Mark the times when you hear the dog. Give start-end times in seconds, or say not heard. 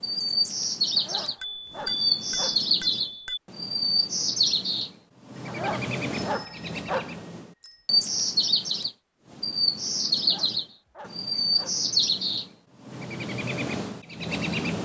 0.9-2.7, 5.5-7.2, 10.2-11.8.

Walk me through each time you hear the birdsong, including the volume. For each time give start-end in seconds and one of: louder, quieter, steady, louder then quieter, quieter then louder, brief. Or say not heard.
0.0-14.7 steady.